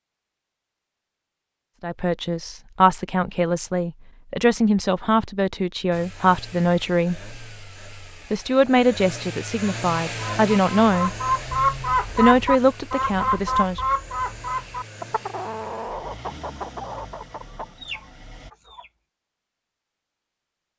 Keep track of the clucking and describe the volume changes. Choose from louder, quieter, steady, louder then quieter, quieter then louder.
quieter.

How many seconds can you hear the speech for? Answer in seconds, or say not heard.
10 s.